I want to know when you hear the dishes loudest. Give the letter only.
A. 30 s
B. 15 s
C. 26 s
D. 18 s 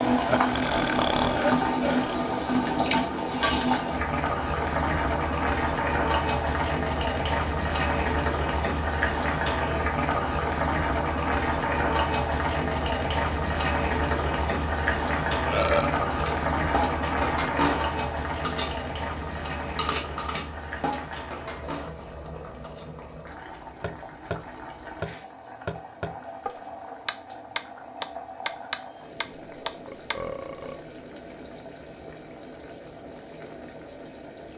D.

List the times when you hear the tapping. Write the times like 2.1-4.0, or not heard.
23.8-30.1.